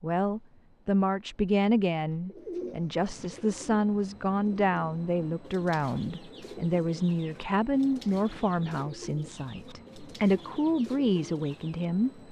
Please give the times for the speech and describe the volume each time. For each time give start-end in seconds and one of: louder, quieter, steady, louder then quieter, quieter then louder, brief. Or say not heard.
0.0-12.2 steady.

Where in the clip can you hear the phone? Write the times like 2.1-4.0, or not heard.
not heard.